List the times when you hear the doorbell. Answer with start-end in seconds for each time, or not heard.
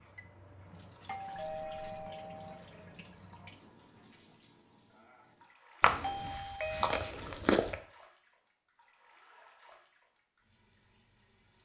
1.1-2.6, 6.0-7.0.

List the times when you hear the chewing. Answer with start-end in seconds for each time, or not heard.
5.8-7.8.